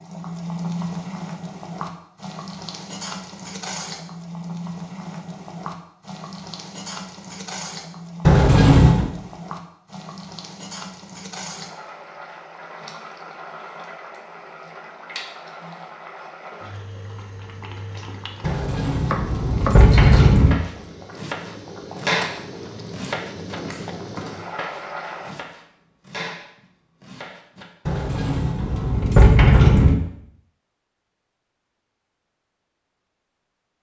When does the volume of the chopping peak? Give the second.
22 s.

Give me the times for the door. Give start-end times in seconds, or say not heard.
8.2-9.1, 18.4-20.6, 27.9-29.9.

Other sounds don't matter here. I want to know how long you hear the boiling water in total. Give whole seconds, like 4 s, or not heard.
25 s.